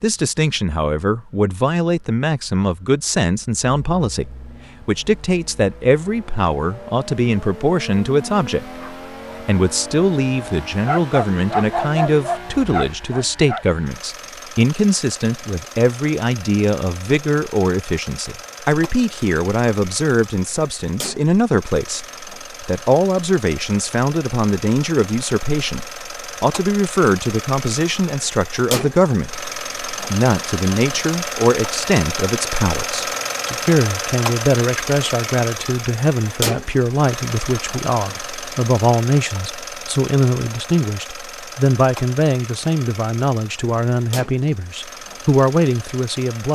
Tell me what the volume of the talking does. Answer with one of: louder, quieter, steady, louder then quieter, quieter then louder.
steady.